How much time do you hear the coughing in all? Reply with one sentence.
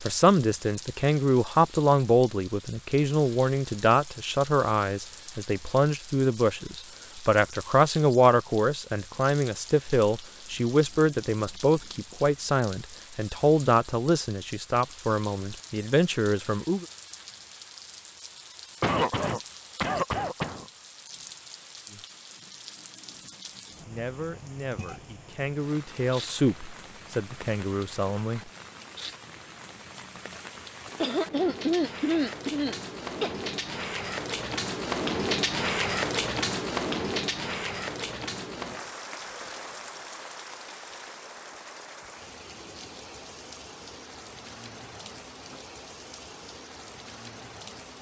The coughing can be heard for 4 seconds in total.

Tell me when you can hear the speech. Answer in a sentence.
The speech can be heard from 0.0 to 16.9 s and from 23.9 to 28.4 s.